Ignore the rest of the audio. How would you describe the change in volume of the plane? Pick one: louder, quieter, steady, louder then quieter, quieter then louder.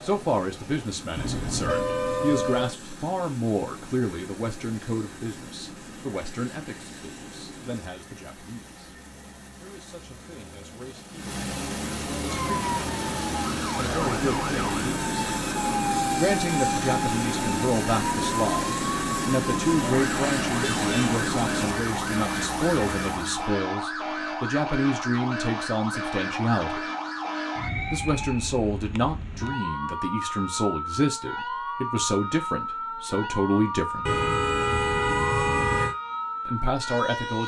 louder.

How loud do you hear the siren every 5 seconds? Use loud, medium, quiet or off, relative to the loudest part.
off, off, loud, loud, loud, loud, loud, loud.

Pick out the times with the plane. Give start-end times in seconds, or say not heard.
0.0-23.5.